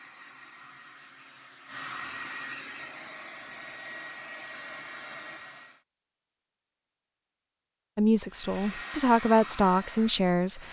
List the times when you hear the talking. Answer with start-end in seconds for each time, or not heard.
8.0-10.6.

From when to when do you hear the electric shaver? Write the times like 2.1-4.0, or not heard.
not heard.